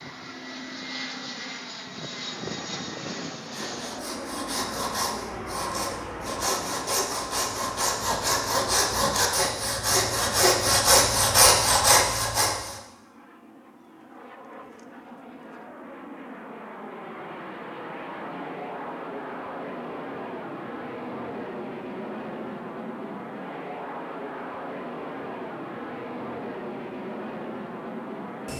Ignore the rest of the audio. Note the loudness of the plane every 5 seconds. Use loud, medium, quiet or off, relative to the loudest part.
loud, loud, quiet, loud, loud, loud.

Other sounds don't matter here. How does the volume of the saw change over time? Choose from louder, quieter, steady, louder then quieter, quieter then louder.
louder.